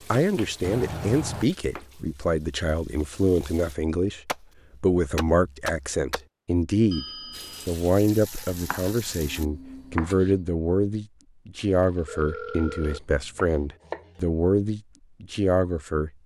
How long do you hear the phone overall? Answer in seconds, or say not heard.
3 s.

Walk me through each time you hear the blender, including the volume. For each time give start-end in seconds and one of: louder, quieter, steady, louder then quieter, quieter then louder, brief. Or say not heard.
not heard.